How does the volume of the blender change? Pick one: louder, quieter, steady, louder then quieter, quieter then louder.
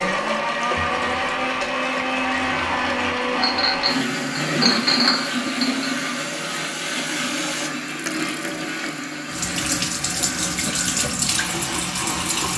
quieter.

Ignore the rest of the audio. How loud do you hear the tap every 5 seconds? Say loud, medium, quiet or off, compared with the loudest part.
medium, medium, loud.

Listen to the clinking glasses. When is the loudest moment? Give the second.
5 s.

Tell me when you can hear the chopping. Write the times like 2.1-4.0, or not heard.
not heard.